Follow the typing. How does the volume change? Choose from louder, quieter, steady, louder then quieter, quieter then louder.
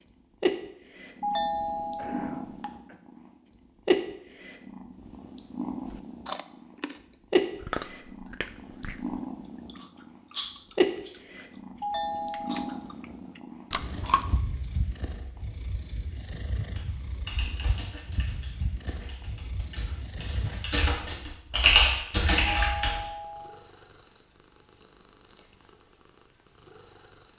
quieter then louder.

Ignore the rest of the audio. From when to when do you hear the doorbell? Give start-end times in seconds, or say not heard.
1.2-2.7, 11.8-12.8, 22.4-23.6.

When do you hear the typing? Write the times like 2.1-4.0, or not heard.
16.6-23.0.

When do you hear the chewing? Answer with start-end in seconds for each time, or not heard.
5.8-7.0, 7.6-12.9, 13.7-14.4.